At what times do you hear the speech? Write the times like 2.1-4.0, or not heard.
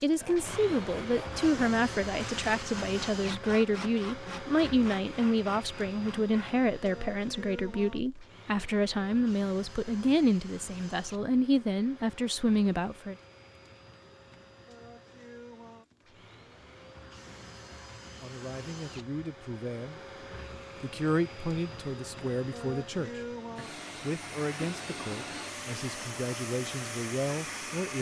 0.0-13.2, 18.2-20.0, 20.8-27.9.